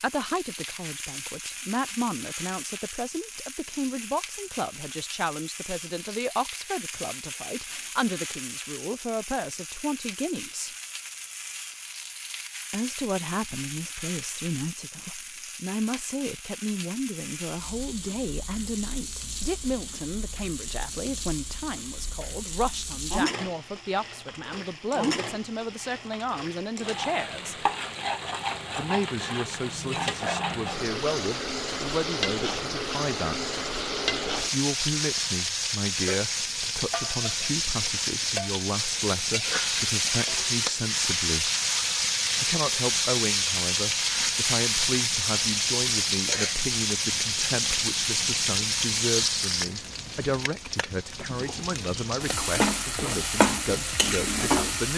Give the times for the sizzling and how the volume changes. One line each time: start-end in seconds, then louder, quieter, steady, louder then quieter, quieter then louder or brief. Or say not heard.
0.0-54.9 louder.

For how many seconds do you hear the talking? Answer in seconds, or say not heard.
50 s.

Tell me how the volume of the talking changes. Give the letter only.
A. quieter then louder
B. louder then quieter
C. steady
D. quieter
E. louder
C.